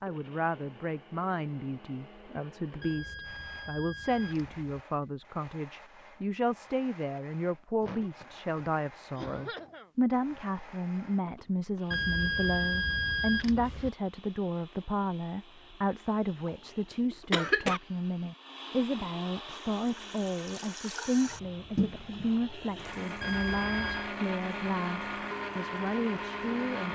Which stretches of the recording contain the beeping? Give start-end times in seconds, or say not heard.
2.8-4.8, 11.9-13.9, 23.2-24.1.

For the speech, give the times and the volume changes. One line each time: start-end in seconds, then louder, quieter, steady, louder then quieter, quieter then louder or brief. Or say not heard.
0.0-26.8 steady.